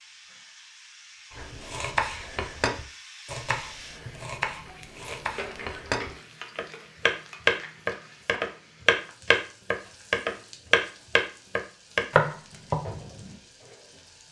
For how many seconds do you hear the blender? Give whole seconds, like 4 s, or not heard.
not heard.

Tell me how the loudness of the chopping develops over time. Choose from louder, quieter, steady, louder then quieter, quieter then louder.
louder.